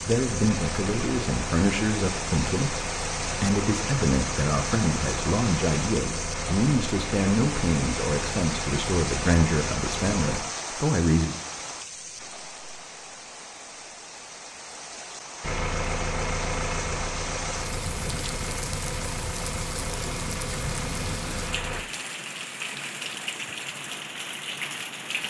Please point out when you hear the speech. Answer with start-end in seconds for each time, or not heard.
0.0-11.3.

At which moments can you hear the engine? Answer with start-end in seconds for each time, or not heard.
0.0-10.4, 15.4-21.9.